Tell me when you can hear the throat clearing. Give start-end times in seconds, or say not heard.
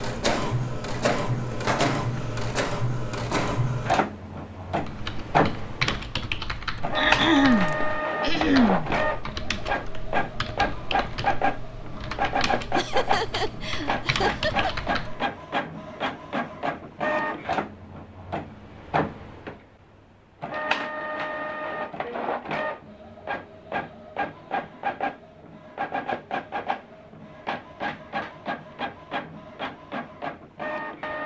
7.0-8.9.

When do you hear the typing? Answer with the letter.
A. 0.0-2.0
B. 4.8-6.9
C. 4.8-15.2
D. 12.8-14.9
C.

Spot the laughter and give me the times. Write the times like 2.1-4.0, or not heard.
12.8-14.9.